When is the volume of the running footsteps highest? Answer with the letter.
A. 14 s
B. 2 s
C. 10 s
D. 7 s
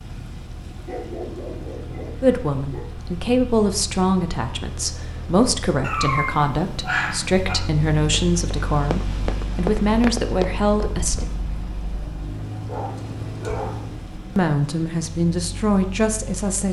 C.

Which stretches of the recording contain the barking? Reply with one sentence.
The barking can be heard from 0.7 to 2.9 s, from 5.8 to 7.5 s and from 12.5 to 13.8 s.